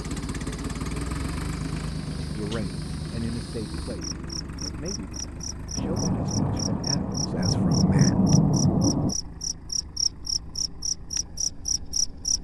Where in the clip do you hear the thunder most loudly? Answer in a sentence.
The loudest moment of the thunder is at 8 seconds.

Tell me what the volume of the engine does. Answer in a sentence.
The volume of the engine goes down.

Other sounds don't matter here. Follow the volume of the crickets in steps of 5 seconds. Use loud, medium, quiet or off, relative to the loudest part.
quiet, medium, loud.